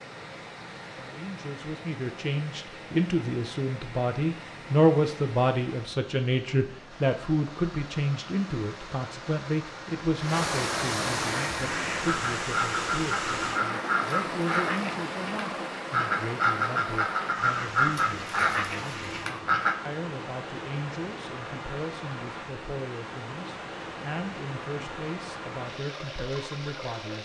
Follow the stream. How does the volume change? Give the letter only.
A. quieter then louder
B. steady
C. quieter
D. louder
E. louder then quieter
E.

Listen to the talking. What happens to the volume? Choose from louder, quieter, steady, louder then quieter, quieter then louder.
quieter.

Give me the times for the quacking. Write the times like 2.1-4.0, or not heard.
11.2-19.8.